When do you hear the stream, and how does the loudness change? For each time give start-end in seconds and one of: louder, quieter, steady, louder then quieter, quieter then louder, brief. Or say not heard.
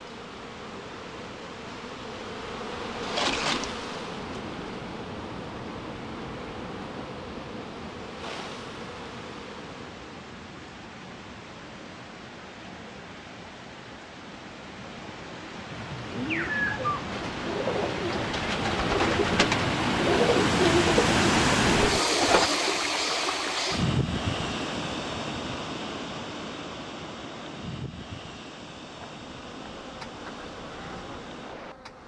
0.0-32.0 louder then quieter.